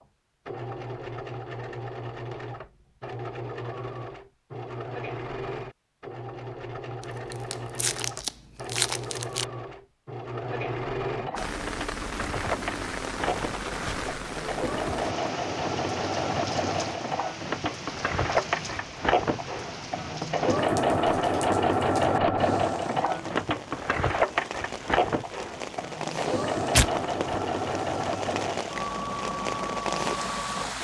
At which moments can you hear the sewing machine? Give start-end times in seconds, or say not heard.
0.0-30.7.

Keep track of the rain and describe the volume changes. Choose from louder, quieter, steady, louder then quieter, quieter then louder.
quieter then louder.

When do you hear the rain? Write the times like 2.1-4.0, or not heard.
11.3-30.7.